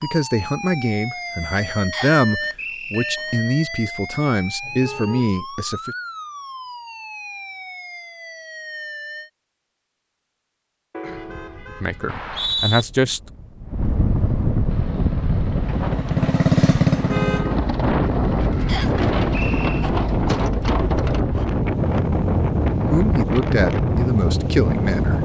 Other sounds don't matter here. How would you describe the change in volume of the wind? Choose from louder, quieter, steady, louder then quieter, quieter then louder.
louder.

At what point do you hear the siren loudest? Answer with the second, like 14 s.
2 s.